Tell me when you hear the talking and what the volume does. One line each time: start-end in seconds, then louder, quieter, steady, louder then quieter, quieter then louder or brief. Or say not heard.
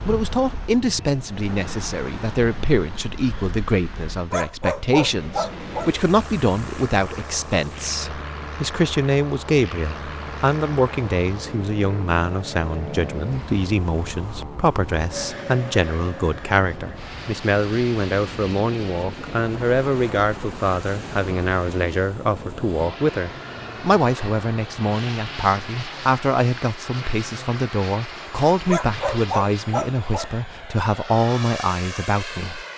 0.1-32.6 steady.